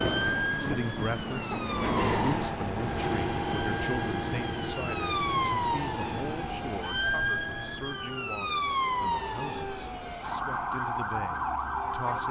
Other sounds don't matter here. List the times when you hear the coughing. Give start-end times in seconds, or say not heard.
0.3-1.8.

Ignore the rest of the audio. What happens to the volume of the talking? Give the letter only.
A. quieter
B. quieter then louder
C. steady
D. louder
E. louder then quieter
A.